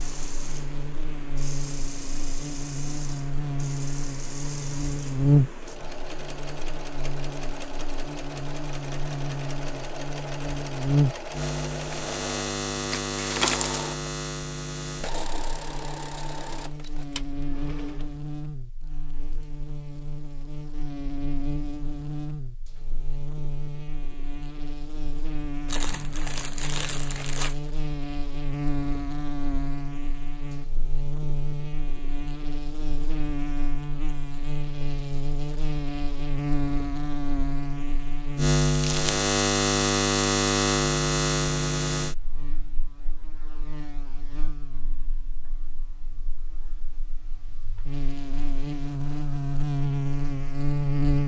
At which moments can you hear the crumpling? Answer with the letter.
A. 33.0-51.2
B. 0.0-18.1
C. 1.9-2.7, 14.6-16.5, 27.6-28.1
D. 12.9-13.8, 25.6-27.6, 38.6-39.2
D.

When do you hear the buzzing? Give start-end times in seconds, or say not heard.
0.0-51.2.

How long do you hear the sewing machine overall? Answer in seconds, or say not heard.
18 s.